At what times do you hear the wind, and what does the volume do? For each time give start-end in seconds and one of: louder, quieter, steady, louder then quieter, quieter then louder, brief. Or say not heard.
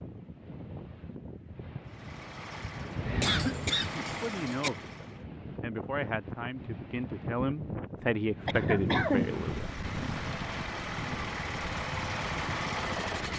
0.0-13.3 louder then quieter.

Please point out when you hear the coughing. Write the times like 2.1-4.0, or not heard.
3.2-4.7, 8.4-9.3.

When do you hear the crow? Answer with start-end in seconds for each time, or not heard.
not heard.